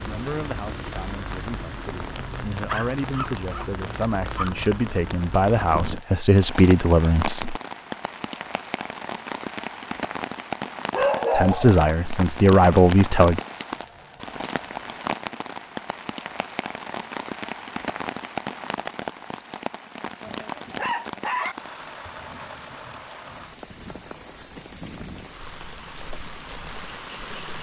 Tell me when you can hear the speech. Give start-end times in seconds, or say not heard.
0.0-7.5, 11.3-13.4.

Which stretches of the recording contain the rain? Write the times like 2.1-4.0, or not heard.
0.0-27.5.